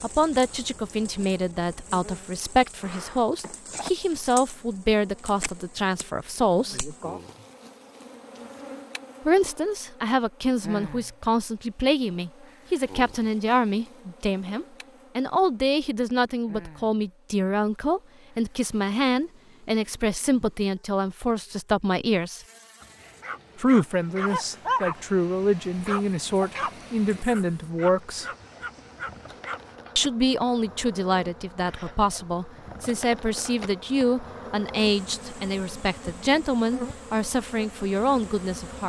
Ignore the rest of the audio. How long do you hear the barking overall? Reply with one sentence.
The barking can be heard for 7 seconds in total.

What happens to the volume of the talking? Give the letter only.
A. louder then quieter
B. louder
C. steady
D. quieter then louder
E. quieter
C.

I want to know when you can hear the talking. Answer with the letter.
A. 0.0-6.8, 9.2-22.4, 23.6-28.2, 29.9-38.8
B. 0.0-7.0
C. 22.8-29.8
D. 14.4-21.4
A.